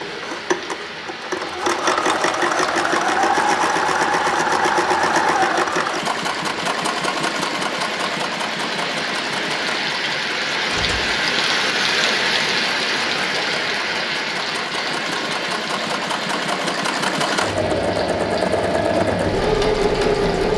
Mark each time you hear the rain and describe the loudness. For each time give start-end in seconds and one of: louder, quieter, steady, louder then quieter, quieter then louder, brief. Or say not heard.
0.0-20.5 louder then quieter.